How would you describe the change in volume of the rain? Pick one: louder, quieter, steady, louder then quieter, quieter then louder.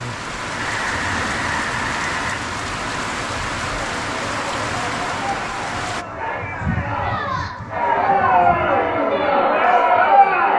steady.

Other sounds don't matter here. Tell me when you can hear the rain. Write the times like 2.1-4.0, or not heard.
0.0-6.0.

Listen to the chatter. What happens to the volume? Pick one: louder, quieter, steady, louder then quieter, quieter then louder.
louder.